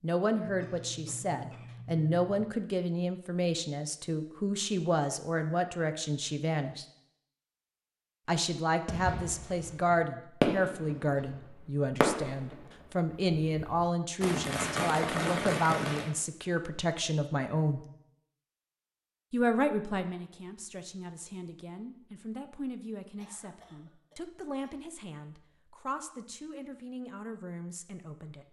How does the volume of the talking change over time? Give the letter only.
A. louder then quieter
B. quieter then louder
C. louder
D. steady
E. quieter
E.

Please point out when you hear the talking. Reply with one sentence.
You can hear the talking from 0.0 to 6.8 s, from 8.2 to 17.9 s and from 19.3 to 28.4 s.